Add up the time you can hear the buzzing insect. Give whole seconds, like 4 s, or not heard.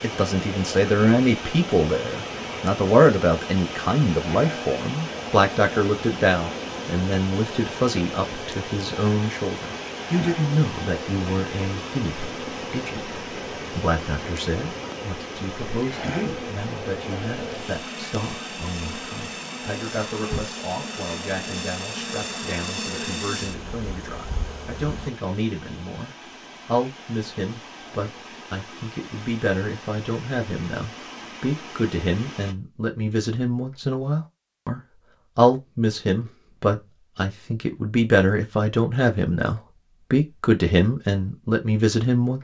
25 s.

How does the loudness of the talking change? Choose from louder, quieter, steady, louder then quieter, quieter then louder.
quieter then louder.